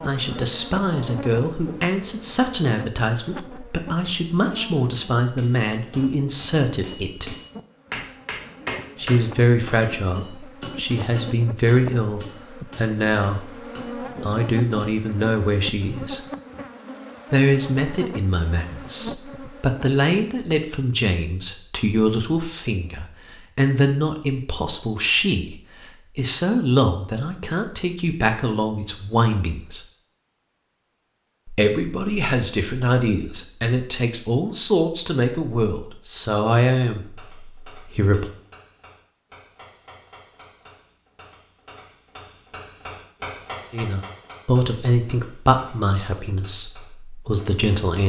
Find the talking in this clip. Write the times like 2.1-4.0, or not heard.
0.1-7.3, 8.9-16.2, 17.3-25.6, 26.1-29.8, 31.4-38.3, 43.7-48.0.